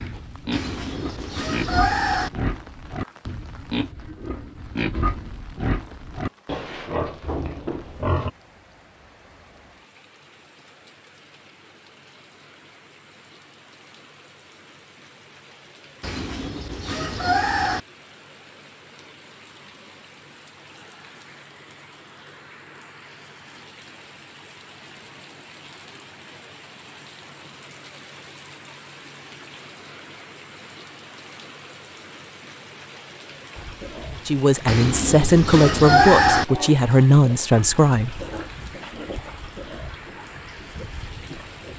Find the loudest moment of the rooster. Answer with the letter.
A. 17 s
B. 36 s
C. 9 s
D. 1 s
B.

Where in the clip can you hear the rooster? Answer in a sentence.
The rooster can be heard from 0.5 to 2.3 s, from 16.0 to 17.8 s and from 34.6 to 36.5 s.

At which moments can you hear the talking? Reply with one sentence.
The talking can be heard from 34.2 to 38.2 s.